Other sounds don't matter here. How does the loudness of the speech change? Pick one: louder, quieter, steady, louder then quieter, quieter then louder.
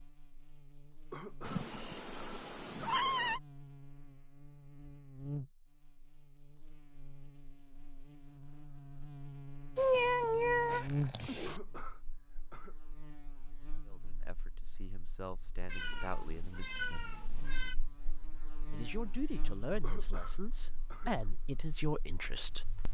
louder.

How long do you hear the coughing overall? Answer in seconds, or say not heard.
4 s.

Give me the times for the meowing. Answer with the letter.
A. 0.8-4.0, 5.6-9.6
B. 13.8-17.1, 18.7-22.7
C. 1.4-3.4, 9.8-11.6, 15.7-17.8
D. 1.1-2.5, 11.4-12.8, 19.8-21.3
C.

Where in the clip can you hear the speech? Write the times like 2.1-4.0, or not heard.
13.8-17.1, 18.7-22.7.